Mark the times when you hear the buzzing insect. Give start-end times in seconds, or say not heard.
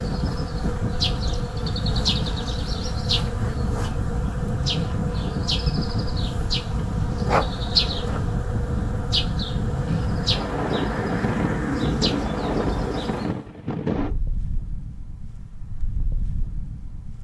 0.0-13.4.